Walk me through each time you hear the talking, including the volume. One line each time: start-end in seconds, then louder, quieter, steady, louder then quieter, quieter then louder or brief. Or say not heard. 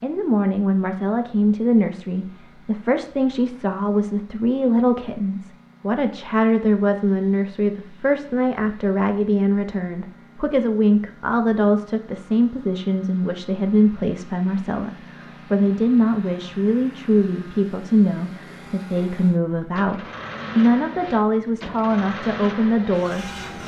0.0-23.6 steady.